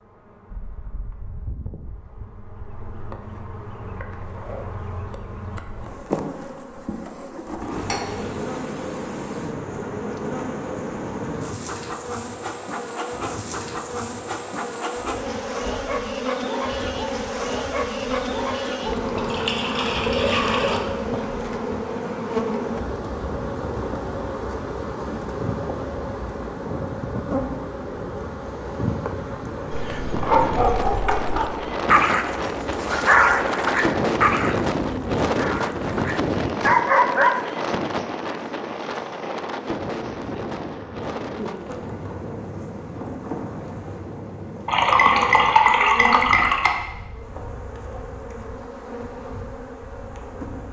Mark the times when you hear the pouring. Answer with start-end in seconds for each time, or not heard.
7.7-8.4, 19.1-20.8, 44.6-46.7.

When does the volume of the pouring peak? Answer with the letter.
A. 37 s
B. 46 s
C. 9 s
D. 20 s
B.